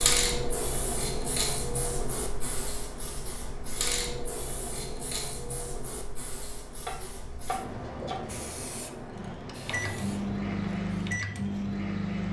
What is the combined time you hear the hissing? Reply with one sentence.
The hissing can be heard for 11 seconds in total.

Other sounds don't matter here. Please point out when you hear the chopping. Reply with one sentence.
The chopping can be heard from 6.8 to 8.4 s.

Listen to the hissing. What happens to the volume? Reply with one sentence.
The volume of the hissing goes down.